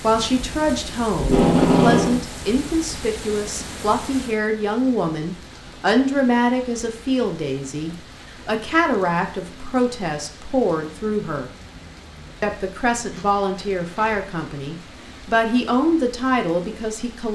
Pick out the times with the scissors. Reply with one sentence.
You can't hear the scissors here.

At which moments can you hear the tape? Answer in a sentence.
You can hear the tape from 1.1 to 2.2 s and from 13.1 to 14.2 s.